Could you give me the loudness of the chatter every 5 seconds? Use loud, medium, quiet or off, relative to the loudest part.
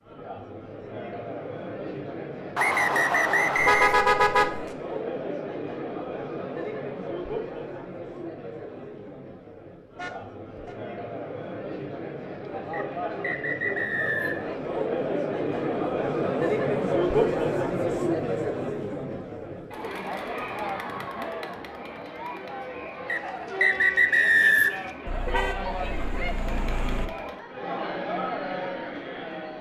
medium, medium, medium, loud, medium, medium.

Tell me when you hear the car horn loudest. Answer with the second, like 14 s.
4 s.